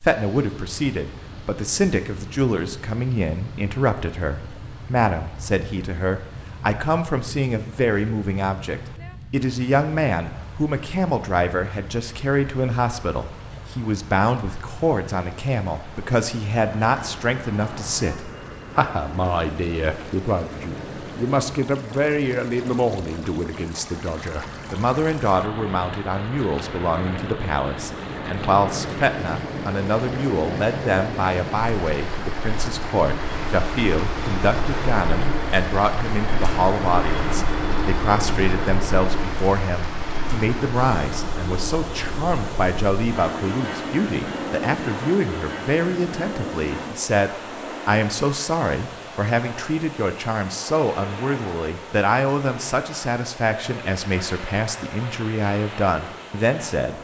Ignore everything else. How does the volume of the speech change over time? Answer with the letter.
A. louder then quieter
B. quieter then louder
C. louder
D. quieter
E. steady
E.